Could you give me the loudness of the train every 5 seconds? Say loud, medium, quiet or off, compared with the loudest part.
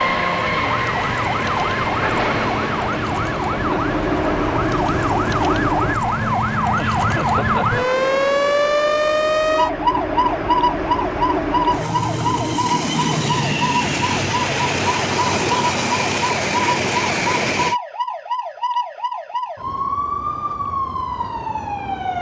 loud, medium, loud, loud, off.